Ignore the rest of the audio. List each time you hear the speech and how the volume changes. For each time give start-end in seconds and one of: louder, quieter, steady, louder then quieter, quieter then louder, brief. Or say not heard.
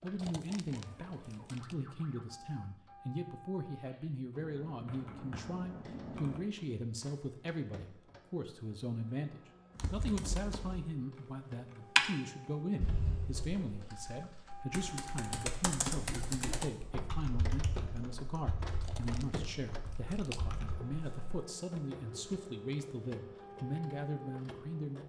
0.0-25.0 steady.